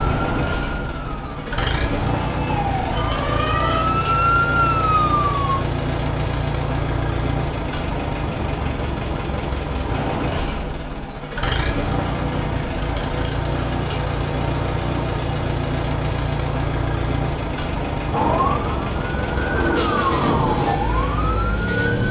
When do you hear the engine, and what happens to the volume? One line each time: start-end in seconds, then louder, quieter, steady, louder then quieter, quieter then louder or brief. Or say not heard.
0.0-22.0 steady.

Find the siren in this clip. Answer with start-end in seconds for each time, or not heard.
0.0-5.6, 18.1-22.0.